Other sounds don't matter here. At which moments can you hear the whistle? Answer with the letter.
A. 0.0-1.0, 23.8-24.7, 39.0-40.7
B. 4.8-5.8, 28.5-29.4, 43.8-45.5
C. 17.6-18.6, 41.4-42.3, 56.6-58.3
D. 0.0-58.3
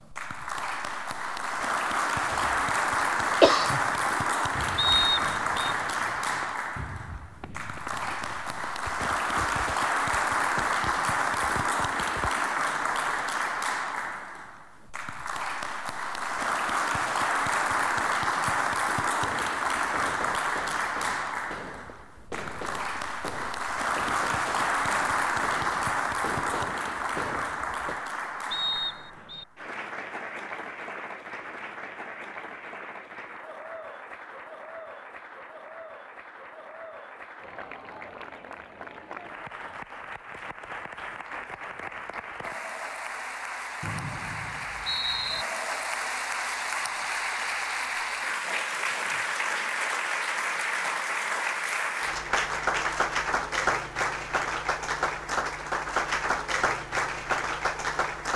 B.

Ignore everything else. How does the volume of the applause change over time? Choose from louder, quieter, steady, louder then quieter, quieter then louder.
quieter then louder.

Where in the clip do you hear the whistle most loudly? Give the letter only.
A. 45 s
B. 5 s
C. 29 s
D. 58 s
B.